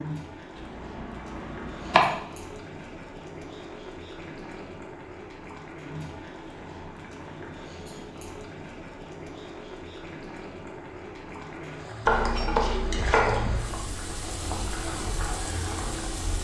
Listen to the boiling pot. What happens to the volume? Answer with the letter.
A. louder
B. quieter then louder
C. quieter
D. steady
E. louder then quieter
A.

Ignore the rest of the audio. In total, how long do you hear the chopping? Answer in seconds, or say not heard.
3 s.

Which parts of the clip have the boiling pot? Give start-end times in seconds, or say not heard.
0.0-16.3.